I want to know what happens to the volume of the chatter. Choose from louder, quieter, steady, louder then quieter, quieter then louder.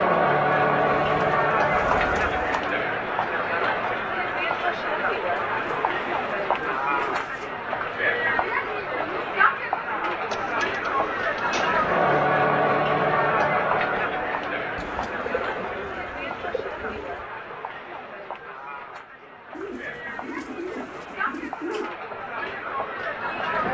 quieter.